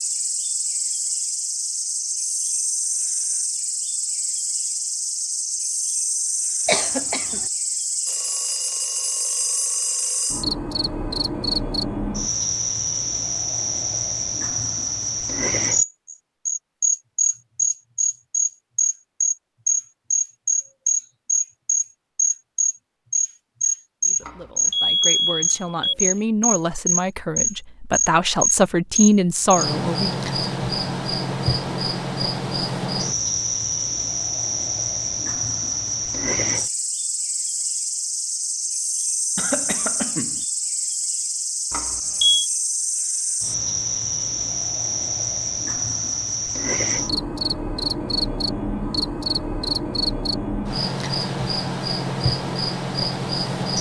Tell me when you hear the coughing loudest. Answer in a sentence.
The volume of the coughing peaks at 7 seconds.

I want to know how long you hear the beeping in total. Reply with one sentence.
The beeping can be heard for 5 seconds in total.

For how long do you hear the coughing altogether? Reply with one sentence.
You can hear the coughing for 2 seconds altogether.